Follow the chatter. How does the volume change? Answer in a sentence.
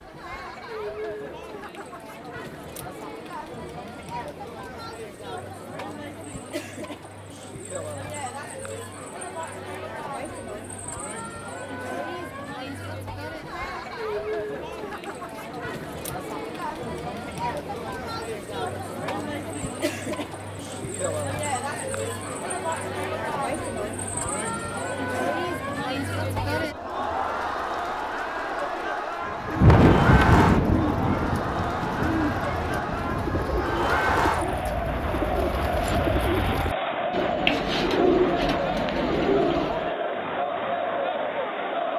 The volume of the chatter goes up.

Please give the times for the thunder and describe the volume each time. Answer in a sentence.
The thunder can be heard from 29.2 to 33.5 s, getting quieter.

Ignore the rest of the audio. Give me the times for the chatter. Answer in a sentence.
You can hear the chatter from 0.0 to 41.9 s.